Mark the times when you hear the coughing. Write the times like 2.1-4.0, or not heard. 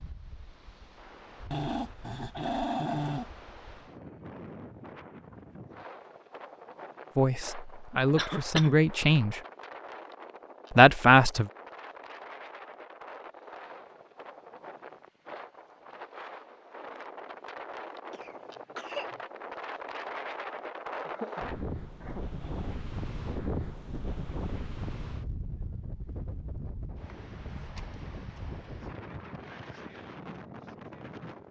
8.2-8.8, 18.1-19.2, 21.1-22.2.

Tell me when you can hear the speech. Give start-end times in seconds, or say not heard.
7.2-9.4, 10.7-11.5.